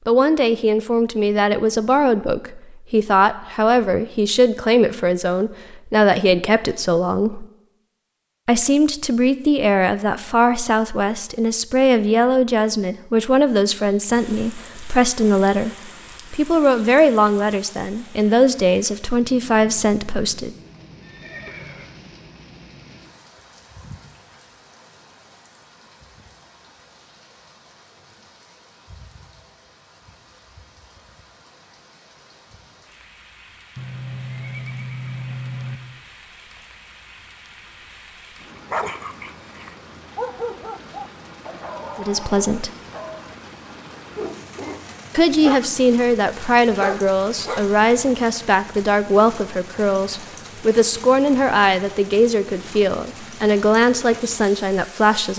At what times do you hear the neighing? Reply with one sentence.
You can hear the neighing from 21.0 to 22.1 s and from 33.8 to 35.8 s.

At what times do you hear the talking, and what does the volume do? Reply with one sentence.
You can hear the talking from 0.1 to 7.5 s, at a steady volume; from 8.4 to 20.6 s, at a steady volume; briefly from 42.0 to 42.7 s; and from 45.1 to 55.3 s, at a steady volume.